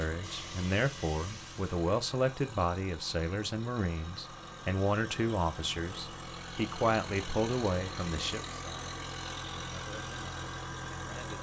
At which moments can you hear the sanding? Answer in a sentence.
The sanding can't be heard in this clip.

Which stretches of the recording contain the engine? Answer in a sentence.
The engine can be heard from 0.0 to 11.3 s.